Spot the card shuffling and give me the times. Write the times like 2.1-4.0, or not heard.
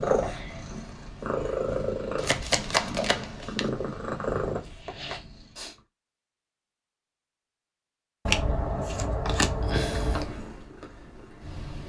2.1-3.7, 8.2-10.2.